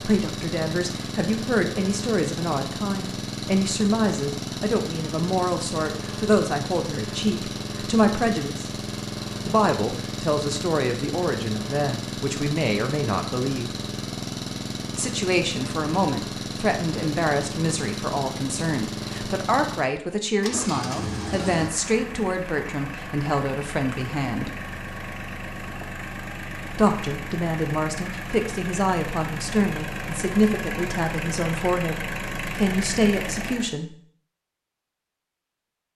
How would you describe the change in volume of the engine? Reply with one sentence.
The loudness of the engine stays about the same.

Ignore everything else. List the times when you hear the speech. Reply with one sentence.
The speech can be heard from 0.0 to 8.7 s, from 9.4 to 13.7 s, from 14.9 to 24.5 s and from 26.7 to 34.0 s.